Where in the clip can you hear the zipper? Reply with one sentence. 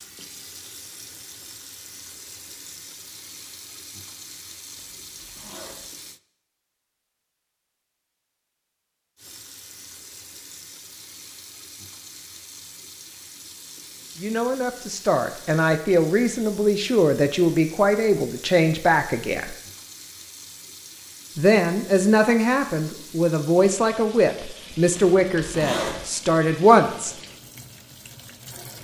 You can hear the zipper from 4.8 to 5.9 s and from 24.9 to 26.1 s.